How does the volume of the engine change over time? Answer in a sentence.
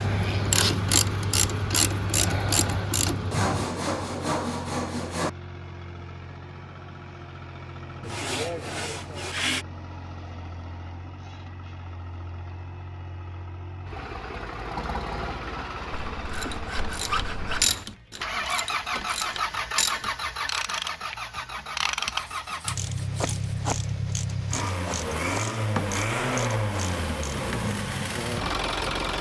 The loudness of the engine goes up.